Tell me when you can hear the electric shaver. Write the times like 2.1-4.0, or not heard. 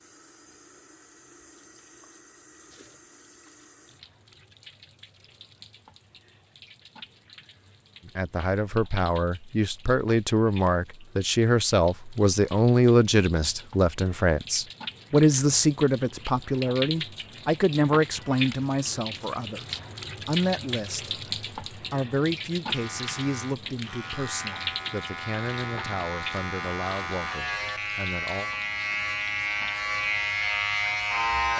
22.7-31.5.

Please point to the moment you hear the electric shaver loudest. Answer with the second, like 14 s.
31 s.